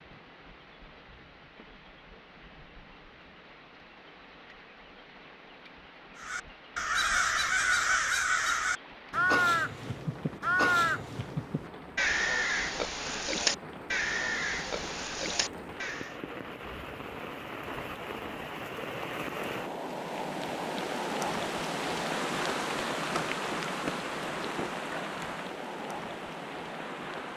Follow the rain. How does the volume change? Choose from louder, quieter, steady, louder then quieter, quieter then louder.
louder.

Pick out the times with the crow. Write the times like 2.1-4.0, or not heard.
6.2-16.2.